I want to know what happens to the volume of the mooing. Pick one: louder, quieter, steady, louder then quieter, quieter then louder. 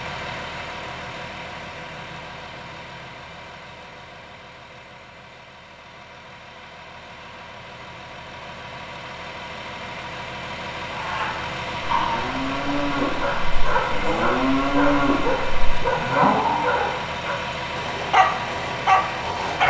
louder.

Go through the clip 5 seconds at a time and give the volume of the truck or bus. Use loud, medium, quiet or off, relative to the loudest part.
medium, medium, loud, loud.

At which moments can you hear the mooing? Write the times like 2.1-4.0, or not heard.
10.9-16.8.